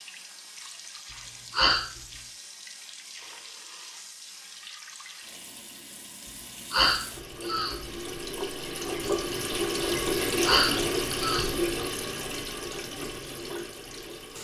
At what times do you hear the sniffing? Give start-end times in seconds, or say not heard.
1.5-2.0, 6.7-7.9, 10.4-11.6.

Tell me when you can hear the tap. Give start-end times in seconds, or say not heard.
0.0-14.3.